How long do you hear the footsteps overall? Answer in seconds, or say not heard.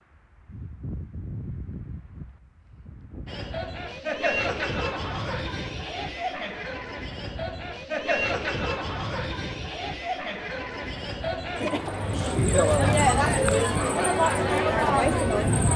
not heard.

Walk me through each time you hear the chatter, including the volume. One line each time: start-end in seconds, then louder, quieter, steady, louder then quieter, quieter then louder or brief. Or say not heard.
3.2-15.7 louder.